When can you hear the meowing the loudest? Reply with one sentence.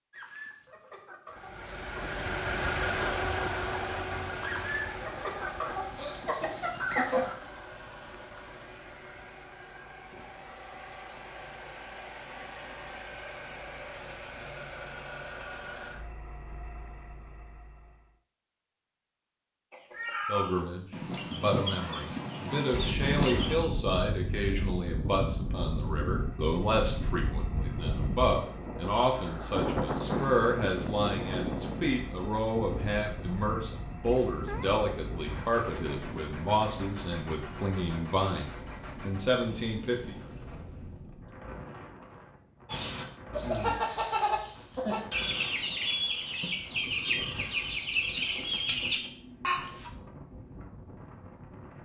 The loudest moment of the meowing is at 20 seconds.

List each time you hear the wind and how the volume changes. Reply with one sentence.
You can hear the wind from 22.7 to 51.8 s, getting quieter.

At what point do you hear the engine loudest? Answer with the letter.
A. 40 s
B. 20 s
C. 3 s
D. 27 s
C.